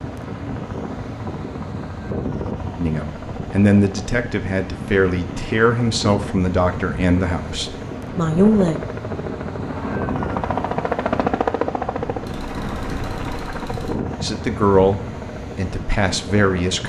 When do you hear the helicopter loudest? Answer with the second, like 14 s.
11 s.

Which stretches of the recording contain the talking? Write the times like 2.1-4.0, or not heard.
2.8-8.8, 14.2-16.8.